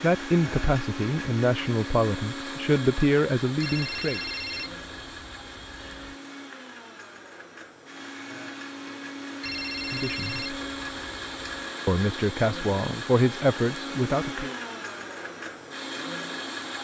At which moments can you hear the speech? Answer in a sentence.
You can hear the speech from 0.0 to 4.2 s, from 9.9 to 10.6 s and from 11.8 to 14.5 s.